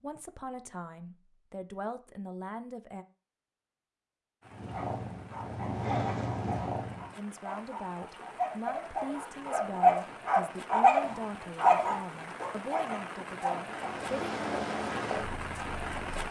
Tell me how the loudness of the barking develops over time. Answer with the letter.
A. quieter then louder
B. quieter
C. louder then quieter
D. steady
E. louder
C.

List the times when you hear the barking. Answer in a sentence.
The barking can be heard from 4.7 to 13.9 s.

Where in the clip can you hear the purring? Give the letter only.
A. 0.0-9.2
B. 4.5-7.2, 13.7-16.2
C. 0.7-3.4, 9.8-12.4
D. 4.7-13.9
B.